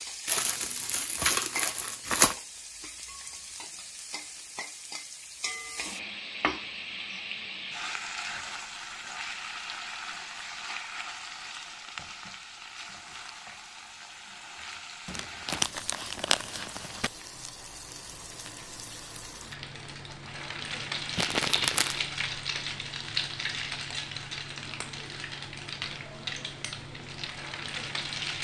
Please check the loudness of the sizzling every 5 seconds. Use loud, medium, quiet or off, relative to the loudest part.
medium, loud, medium, medium, loud, loud.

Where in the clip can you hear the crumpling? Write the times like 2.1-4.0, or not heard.
0.2-2.4, 15.1-17.1, 21.1-22.0.